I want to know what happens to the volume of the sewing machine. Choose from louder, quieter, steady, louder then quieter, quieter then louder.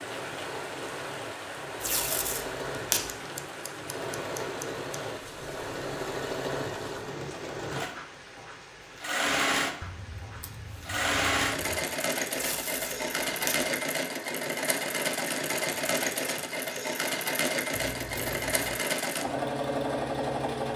louder.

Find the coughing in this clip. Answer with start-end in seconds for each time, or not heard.
not heard.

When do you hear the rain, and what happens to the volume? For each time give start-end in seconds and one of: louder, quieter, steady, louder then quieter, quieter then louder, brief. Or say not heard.
0.0-11.1 quieter.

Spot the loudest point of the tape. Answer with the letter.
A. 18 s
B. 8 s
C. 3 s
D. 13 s
C.